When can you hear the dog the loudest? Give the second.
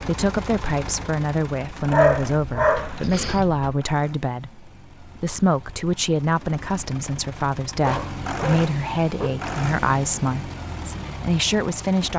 2 s.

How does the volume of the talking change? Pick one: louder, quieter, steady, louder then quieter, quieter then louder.
steady.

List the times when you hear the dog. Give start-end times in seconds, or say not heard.
1.9-3.8, 7.7-9.4.